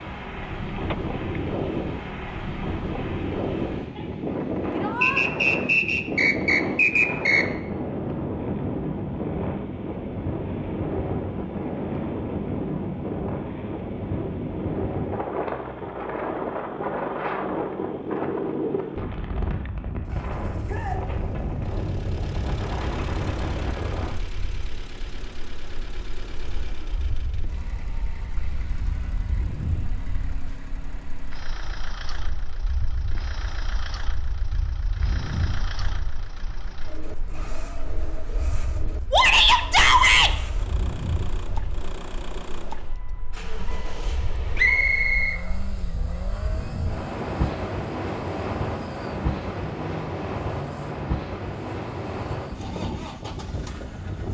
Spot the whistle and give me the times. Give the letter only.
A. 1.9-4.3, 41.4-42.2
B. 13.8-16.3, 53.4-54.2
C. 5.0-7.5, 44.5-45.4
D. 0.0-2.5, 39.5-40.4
C.